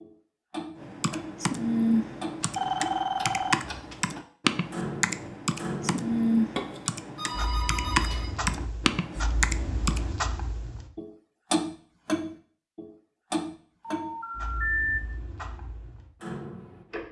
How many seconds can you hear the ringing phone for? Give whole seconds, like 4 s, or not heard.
4 s.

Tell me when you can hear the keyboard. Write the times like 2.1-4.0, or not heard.
0.8-10.2.